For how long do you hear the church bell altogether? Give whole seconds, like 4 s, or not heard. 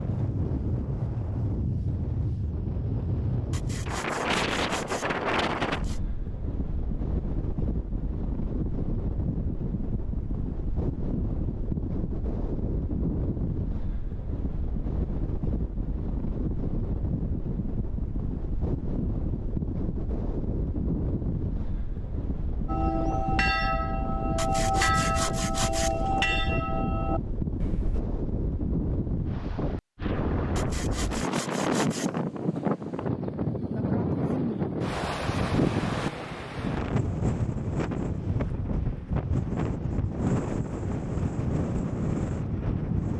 5 s.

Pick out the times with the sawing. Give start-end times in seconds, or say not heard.
3.5-6.0, 24.4-26.2, 30.6-32.2.